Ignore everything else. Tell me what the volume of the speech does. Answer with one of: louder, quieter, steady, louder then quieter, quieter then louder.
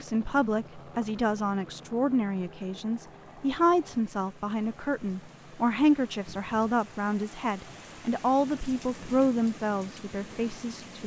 steady.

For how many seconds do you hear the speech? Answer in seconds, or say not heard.
11 s.